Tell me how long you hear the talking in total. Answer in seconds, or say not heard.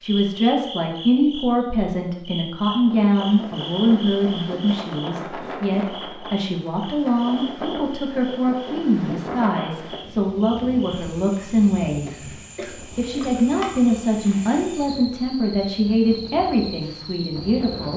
17 s.